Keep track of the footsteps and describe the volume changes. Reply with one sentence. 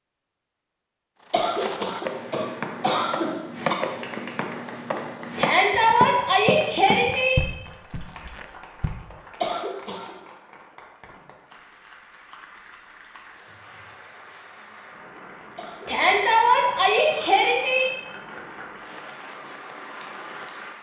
The loudness of the footsteps stays about the same.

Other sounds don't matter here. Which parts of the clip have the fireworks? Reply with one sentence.
The fireworks can't be heard in this clip.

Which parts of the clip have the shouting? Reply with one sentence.
The shouting can be heard from 5.3 to 7.3 s and from 15.8 to 17.9 s.